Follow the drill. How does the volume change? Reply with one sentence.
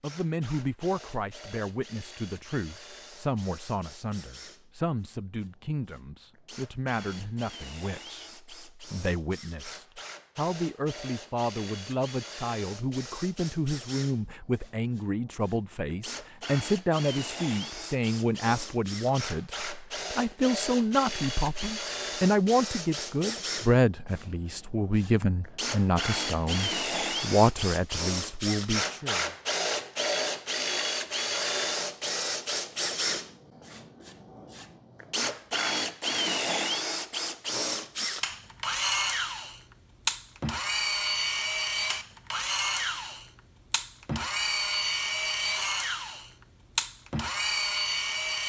The volume of the drill goes up.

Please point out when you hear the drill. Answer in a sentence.
You can hear the drill from 0.0 to 48.4 s.